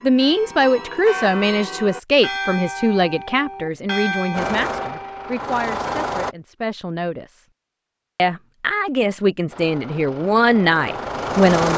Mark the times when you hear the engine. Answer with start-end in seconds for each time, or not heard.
4.3-6.3, 9.5-11.7.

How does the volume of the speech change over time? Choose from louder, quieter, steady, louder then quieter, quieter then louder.
quieter then louder.